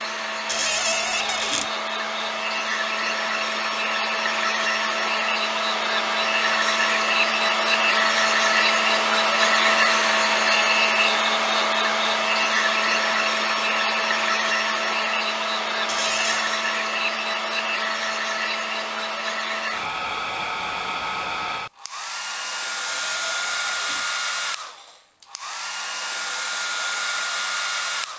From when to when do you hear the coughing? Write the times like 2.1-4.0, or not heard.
not heard.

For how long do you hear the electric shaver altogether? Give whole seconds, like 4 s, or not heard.
not heard.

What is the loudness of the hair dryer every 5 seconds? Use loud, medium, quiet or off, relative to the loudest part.
medium, loud, loud, medium, medium, medium.